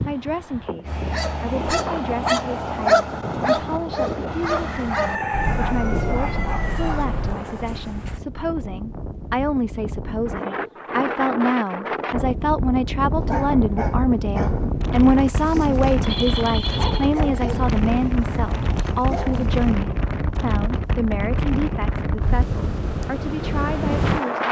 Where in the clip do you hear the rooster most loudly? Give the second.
5 s.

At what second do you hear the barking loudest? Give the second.
3 s.